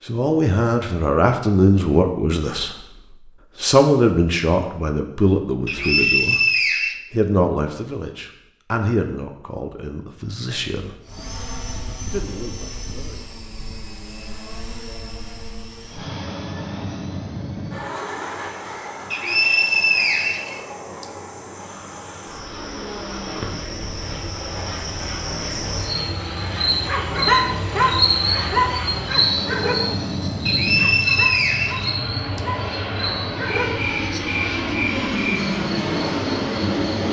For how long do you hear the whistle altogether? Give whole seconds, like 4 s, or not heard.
5 s.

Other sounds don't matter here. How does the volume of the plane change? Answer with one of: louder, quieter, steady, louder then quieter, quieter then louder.
louder.